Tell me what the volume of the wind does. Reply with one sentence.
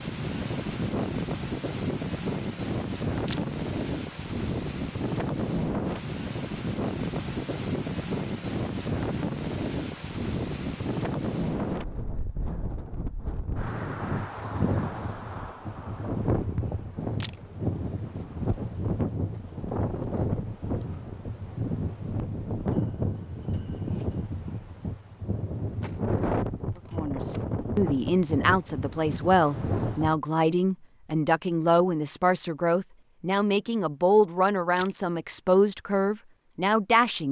The volume of the wind stays about the same.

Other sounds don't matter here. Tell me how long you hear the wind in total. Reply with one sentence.
The wind can be heard for 30 seconds in total.